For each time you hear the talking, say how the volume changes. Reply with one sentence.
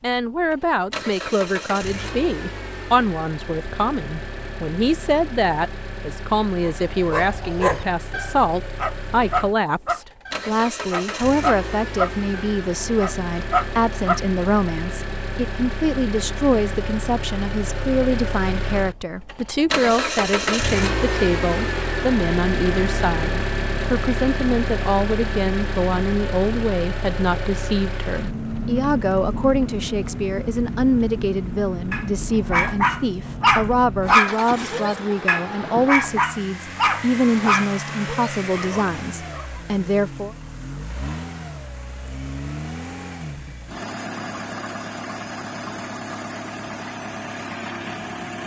You can hear the talking from 0.0 to 40.4 s, at a steady volume.